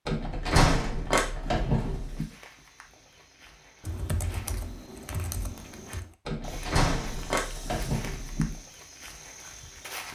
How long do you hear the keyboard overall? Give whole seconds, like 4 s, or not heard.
2 s.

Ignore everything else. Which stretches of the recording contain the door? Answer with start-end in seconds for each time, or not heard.
0.1-2.2, 6.2-8.6.